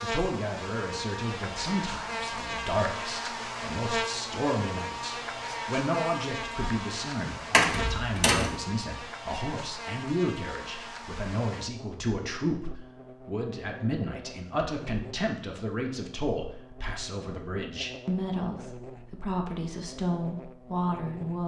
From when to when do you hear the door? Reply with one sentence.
The door can be heard from 7.5 to 8.6 s.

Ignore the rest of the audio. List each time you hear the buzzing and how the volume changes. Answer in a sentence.
You can hear the buzzing from 0.0 to 21.4 s, getting quieter.